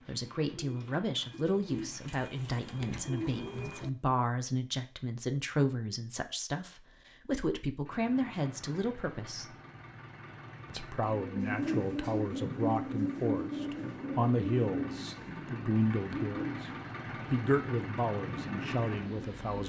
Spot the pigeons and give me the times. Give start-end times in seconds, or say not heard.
0.0-3.9, 11.2-19.6.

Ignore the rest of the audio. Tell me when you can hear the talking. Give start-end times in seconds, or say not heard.
0.1-9.6, 10.7-19.6.